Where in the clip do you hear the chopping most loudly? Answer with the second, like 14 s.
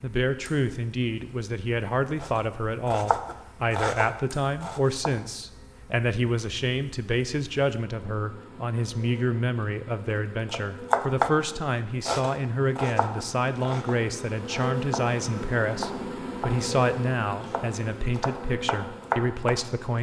11 s.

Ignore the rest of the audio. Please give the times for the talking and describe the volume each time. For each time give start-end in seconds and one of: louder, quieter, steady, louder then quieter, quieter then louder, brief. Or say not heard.
0.0-19.9 steady.